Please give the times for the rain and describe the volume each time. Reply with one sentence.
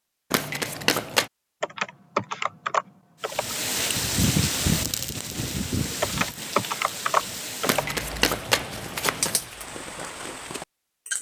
You can hear the rain from 3.2 to 11.1 s, getting quieter.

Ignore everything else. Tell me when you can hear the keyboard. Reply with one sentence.
The keyboard can be heard from 1.6 to 3.6 s and from 6.0 to 8.0 s.